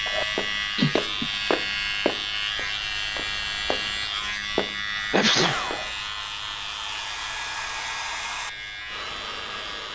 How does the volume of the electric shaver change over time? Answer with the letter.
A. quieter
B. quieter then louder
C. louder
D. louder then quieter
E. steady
A.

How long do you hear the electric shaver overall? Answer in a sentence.
You can hear the electric shaver for 10 seconds altogether.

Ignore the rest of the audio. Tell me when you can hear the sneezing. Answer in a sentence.
The sneezing can be heard from 0.8 to 1.3 s and from 5.1 to 5.6 s.